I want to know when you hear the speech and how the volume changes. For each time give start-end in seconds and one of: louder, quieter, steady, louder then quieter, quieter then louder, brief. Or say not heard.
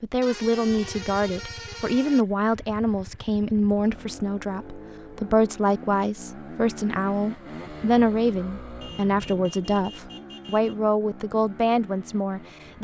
0.0-12.7 steady.